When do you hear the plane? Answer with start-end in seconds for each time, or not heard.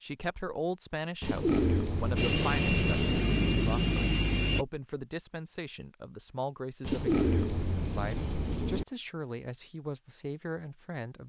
2.1-4.7.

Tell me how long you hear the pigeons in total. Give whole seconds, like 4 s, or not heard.
4 s.